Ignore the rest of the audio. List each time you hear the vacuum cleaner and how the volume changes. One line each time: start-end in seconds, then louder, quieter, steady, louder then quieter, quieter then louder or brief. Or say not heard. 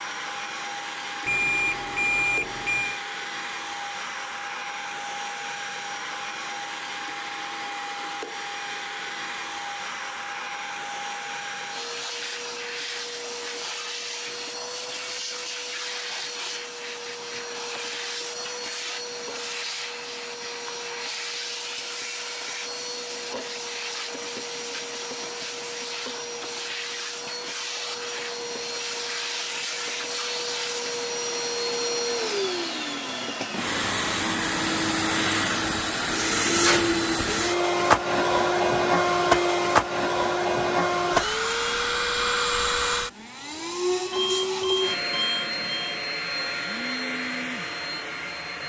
0.0-48.6 louder.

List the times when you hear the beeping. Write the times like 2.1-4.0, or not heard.
1.2-3.0, 44.1-46.0.